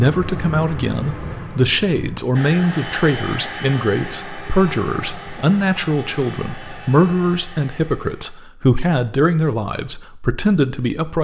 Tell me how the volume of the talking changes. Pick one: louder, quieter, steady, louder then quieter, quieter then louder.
steady.